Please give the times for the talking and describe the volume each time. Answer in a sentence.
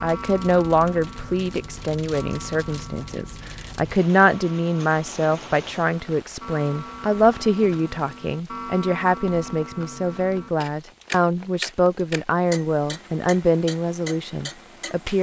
You can hear the talking from 0.0 to 15.1 s, at a steady volume.